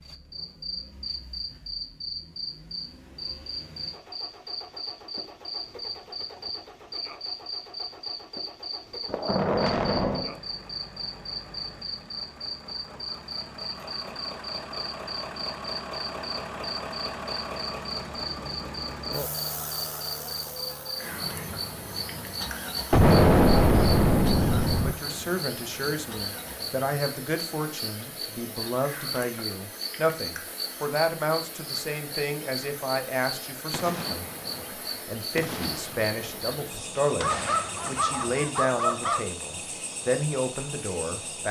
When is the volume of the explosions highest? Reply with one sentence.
The volume of the explosions peaks at 23 seconds.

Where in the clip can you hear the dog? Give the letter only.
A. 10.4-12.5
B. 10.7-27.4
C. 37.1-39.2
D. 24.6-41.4
C.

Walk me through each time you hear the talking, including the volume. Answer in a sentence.
The talking can be heard from 24.6 to 41.4 s, at a steady volume.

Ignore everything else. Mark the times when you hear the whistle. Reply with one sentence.
The whistle can't be heard in this clip.